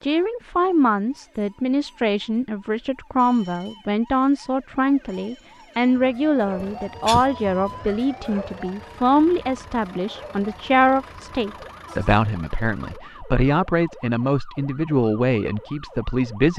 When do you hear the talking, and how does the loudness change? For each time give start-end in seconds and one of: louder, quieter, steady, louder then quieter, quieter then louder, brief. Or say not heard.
0.0-16.5 steady.